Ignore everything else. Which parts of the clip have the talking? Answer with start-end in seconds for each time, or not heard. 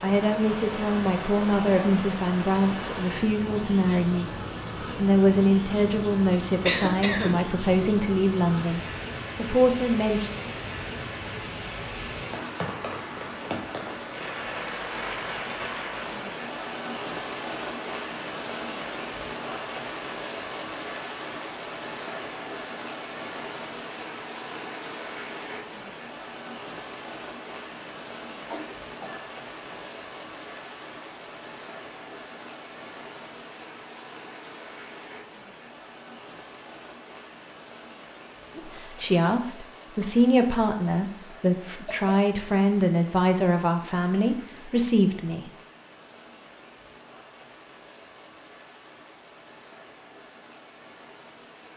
0.0-10.3, 38.5-45.5.